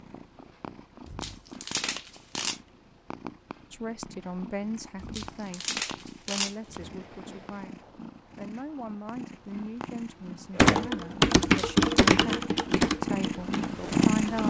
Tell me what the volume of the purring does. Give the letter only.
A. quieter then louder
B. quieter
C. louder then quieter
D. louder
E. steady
D.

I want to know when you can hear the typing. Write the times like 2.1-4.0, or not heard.
10.6-14.4.